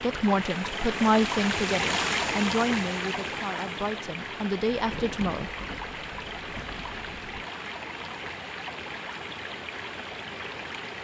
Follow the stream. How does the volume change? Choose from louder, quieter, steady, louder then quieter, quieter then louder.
quieter.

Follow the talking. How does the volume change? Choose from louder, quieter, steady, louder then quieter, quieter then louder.
quieter then louder.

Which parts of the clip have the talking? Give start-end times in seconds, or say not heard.
0.0-5.5.